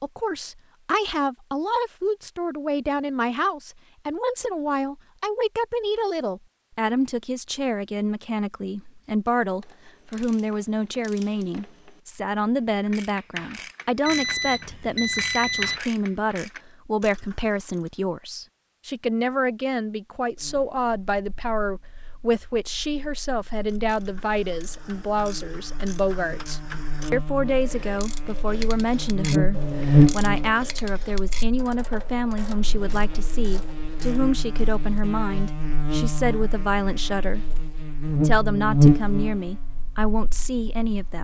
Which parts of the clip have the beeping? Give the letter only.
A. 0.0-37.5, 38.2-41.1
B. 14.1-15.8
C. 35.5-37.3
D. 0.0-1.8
B.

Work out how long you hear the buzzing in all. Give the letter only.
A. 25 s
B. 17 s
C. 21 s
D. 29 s
C.